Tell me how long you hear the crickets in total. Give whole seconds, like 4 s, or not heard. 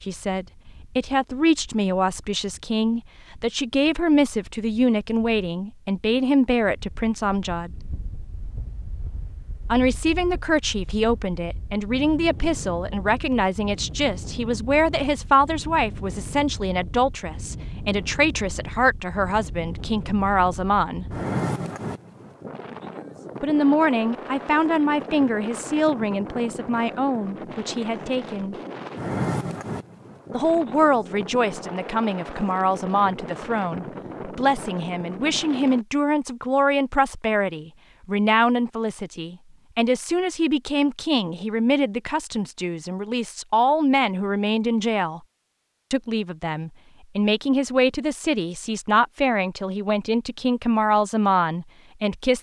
not heard.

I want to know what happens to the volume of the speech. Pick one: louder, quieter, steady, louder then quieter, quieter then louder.
steady.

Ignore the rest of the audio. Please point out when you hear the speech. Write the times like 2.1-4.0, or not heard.
0.0-7.8, 9.7-21.1, 23.4-28.6, 30.3-45.2, 45.9-52.3.